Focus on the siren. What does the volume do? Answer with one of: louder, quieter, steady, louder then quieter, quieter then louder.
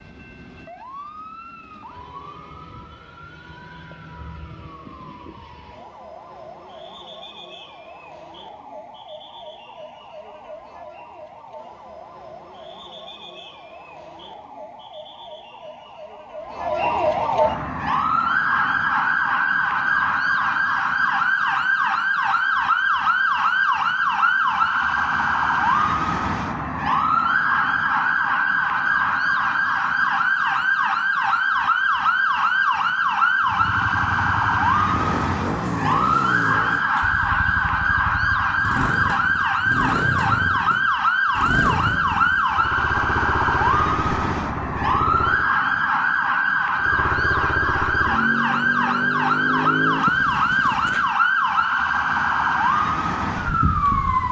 louder.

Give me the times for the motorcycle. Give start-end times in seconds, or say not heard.
33.4-45.5, 46.8-51.1.